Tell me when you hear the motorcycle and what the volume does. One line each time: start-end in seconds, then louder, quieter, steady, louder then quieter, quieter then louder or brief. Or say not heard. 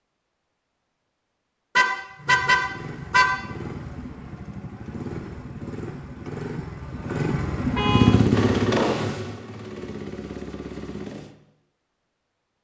2.1-11.3 louder then quieter.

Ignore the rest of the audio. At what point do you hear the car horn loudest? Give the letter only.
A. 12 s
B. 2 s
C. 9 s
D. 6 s
B.